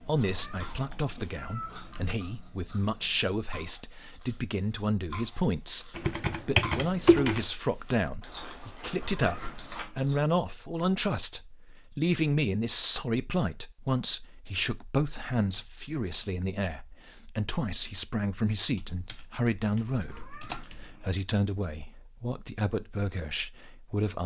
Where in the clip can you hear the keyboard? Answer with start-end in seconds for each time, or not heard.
6.0-7.5, 18.8-20.9.